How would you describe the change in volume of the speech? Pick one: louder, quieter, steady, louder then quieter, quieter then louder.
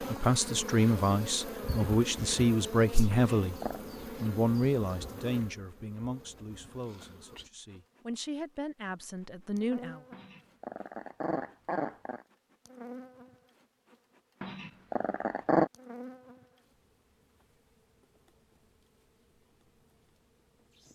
quieter then louder.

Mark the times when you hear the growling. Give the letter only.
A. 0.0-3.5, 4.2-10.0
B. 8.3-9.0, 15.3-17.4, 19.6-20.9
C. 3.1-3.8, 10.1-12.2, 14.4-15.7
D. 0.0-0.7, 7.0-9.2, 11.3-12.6
C.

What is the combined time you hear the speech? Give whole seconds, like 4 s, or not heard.
9 s.